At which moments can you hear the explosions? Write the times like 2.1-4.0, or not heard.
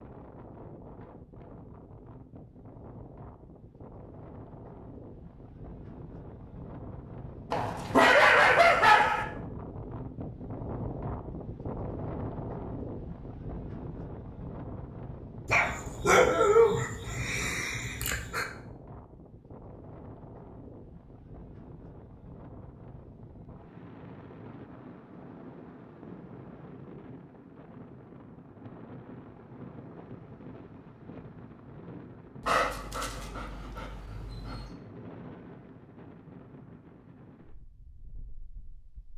not heard.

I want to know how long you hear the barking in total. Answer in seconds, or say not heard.
7 s.